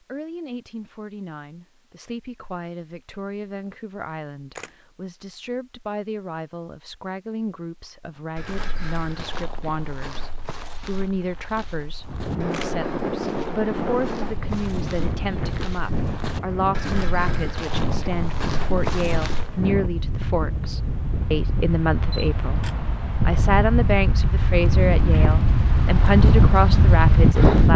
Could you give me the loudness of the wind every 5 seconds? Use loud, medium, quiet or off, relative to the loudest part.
off, off, medium, medium, medium, loud.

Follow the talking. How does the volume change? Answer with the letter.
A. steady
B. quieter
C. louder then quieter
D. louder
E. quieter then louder
D.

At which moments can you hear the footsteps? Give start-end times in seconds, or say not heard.
8.3-19.8.